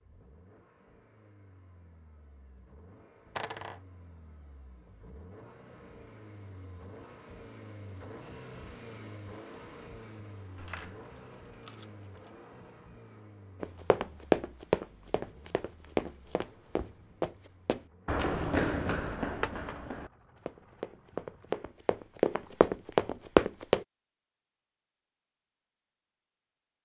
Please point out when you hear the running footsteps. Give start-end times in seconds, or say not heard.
13.6-23.9.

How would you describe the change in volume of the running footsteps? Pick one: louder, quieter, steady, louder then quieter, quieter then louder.
quieter then louder.